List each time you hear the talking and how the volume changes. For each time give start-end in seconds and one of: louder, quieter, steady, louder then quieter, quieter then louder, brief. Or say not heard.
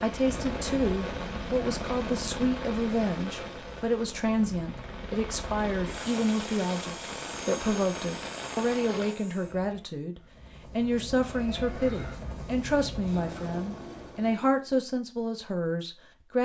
0.0-16.4 steady.